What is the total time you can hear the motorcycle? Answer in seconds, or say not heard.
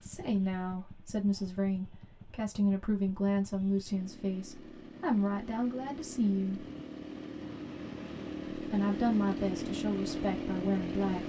11 s.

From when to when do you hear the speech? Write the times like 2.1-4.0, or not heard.
0.0-6.7, 8.5-11.2.